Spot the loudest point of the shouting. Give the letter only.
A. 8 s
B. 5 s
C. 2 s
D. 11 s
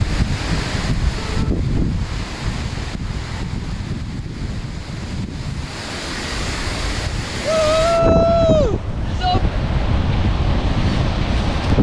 A.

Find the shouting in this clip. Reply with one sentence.
The shouting can be heard from 1.1 to 1.6 s and from 7.4 to 9.4 s.